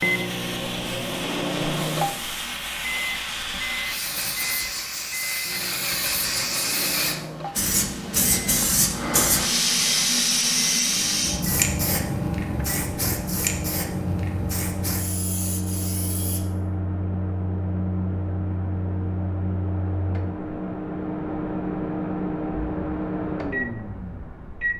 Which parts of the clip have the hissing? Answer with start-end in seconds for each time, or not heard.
0.0-16.4.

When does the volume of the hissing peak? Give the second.
10 s.